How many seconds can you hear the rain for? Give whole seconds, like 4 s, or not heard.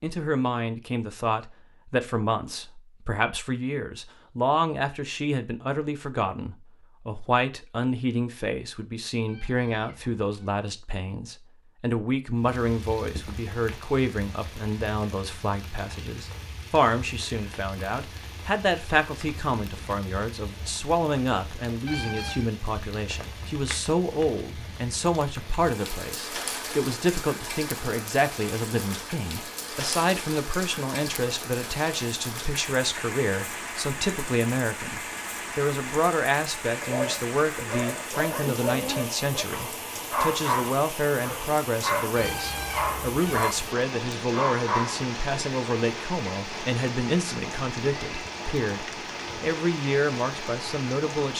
39 s.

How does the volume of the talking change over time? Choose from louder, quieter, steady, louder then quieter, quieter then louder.
steady.